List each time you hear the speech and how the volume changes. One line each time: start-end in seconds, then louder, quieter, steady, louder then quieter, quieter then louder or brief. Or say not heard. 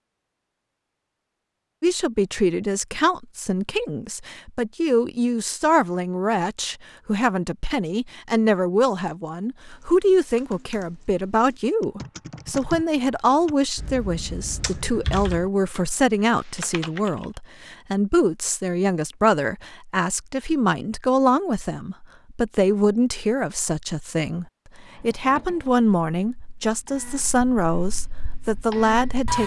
1.8-29.4 steady.